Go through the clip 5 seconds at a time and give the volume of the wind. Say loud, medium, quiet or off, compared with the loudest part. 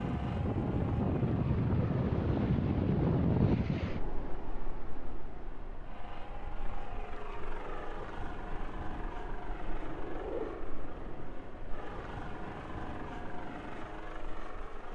loud, quiet, quiet.